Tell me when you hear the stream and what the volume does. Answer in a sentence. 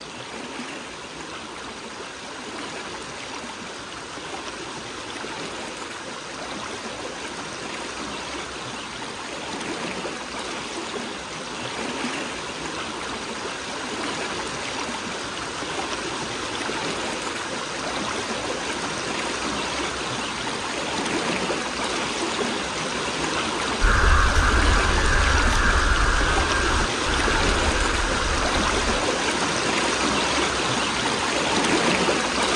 You can hear the stream from 0.0 to 32.5 s, getting louder.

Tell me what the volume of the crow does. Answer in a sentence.
The volume of the crow goes down.